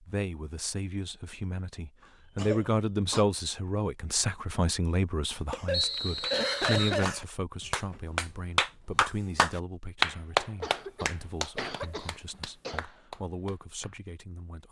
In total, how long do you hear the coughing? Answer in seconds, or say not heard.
5 s.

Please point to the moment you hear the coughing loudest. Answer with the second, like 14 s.
7 s.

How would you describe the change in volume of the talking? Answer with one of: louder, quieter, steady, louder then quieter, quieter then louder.
quieter.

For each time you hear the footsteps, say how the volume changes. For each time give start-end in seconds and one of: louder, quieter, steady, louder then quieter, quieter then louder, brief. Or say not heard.
not heard.